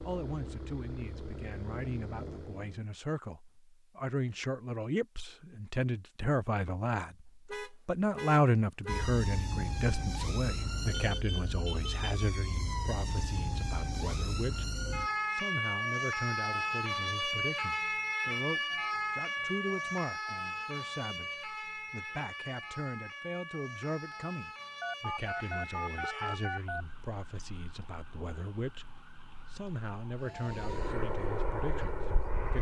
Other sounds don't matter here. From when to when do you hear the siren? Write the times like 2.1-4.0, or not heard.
8.8-30.9.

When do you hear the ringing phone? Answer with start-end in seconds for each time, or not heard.
24.8-26.9.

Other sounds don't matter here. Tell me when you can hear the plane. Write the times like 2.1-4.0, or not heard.
0.0-2.8, 30.4-32.5.